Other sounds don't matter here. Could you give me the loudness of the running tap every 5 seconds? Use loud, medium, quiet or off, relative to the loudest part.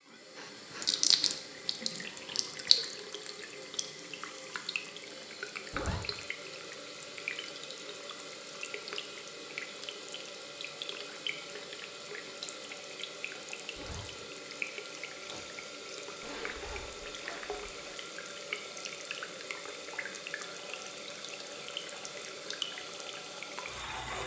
loud, medium, medium, medium, medium.